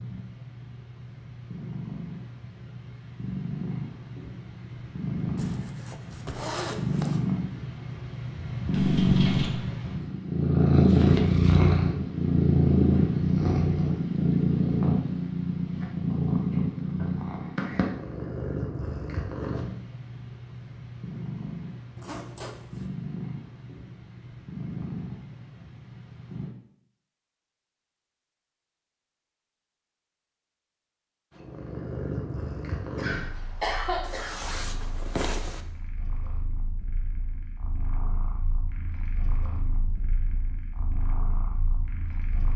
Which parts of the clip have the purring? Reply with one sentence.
The purring can be heard from 0.0 to 26.6 s and from 31.3 to 42.5 s.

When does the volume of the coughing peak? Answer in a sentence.
The volume of the coughing peaks at 34 seconds.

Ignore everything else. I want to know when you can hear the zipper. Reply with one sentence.
You can hear the zipper from 5.3 to 7.2 s, from 21.9 to 22.9 s and from 34.0 to 35.6 s.